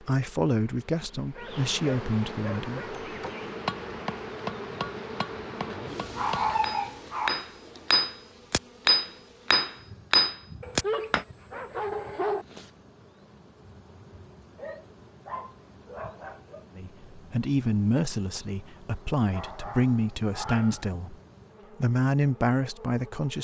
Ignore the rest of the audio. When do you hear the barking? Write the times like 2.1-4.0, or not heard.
1.1-3.0, 5.5-7.3, 10.6-12.4, 14.6-16.6, 19.3-20.9.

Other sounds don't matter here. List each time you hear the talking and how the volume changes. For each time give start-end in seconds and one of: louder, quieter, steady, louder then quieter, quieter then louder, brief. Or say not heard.
0.0-3.0 brief
16.8-21.1 steady
21.8-23.3 brief.